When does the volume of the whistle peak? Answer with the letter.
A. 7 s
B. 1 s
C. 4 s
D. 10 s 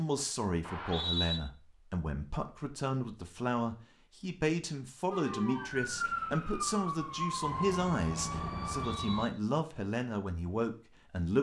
B.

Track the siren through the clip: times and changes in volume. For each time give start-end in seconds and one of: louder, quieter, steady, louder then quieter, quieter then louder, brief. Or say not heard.
5.1-9.3 steady.